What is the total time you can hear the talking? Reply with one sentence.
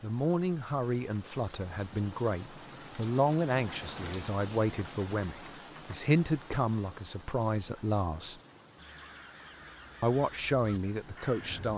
You can hear the talking for 10 seconds altogether.